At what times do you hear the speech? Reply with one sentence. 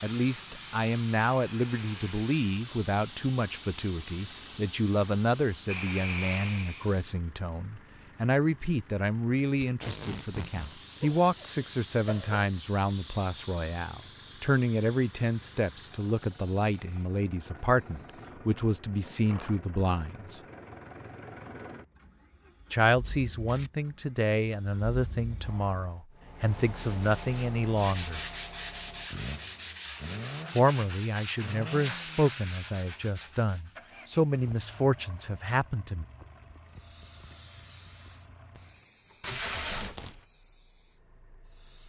You can hear the speech from 0.0 to 20.4 s, from 22.7 to 28.2 s and from 30.6 to 36.0 s.